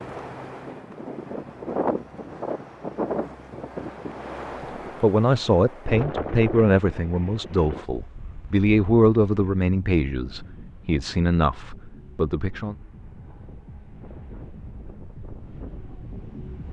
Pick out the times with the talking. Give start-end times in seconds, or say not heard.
5.0-12.8.